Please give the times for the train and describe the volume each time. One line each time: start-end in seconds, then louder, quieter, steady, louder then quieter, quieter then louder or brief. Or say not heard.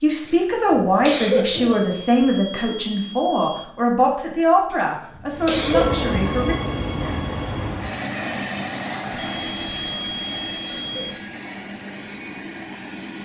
5.3-13.2 quieter.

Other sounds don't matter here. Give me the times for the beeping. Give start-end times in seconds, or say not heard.
1.8-3.6, 9.1-11.2.